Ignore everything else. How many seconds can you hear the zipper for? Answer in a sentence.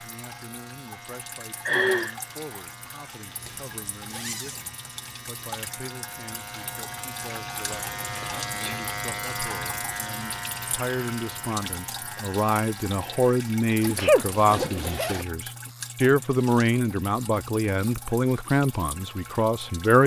You can hear the zipper for 3 seconds altogether.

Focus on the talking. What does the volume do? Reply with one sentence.
The loudness of the talking goes up.